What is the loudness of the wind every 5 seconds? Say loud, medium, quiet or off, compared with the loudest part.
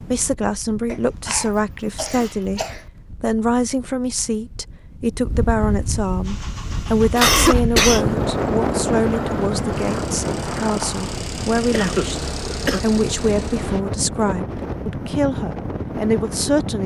quiet, loud, loud, loud.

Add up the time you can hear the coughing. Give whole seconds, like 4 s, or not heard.
4 s.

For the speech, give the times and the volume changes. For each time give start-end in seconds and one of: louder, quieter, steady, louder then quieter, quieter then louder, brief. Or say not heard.
0.0-16.8 steady.